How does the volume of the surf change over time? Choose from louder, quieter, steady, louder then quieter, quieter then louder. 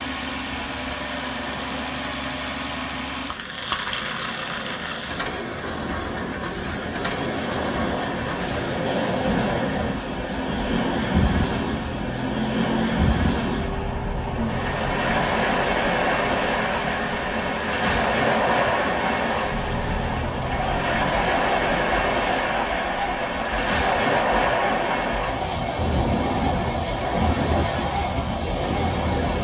louder.